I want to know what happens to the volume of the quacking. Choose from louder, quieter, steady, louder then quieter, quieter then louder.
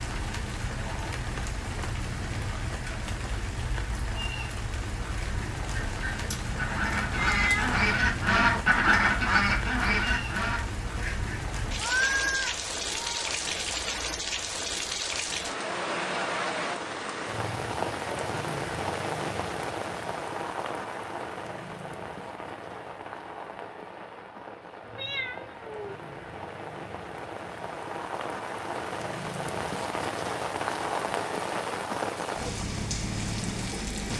louder then quieter.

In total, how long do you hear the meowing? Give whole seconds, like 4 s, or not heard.
4 s.